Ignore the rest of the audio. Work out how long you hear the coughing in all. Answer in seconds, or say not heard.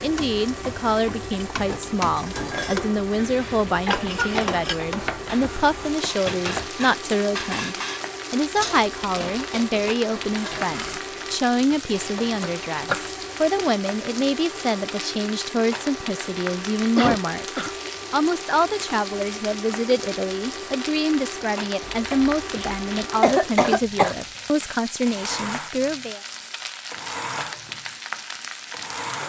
3 s.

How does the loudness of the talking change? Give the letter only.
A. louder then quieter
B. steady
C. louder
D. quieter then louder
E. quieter
B.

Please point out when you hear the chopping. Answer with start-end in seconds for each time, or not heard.
4.2-6.8, 11.7-13.7, 21.8-23.1.